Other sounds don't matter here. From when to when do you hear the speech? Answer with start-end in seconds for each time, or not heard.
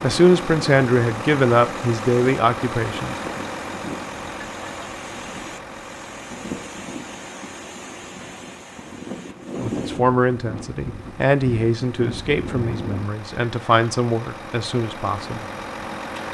0.0-3.1, 9.6-15.4.